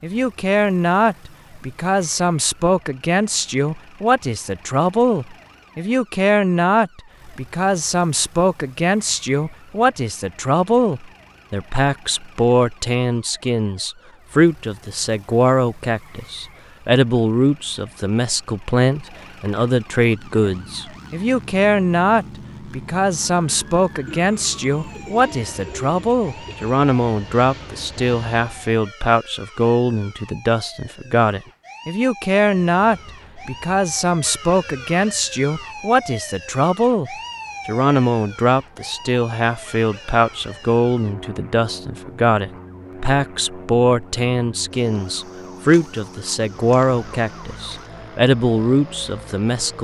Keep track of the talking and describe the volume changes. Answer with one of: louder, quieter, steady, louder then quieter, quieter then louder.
steady.